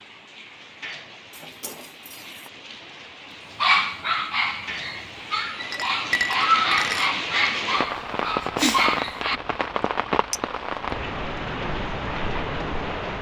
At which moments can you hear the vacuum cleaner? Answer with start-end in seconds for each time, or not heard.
not heard.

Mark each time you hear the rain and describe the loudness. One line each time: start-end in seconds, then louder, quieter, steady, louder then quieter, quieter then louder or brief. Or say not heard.
0.0-13.1 louder.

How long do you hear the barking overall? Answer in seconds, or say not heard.
6 s.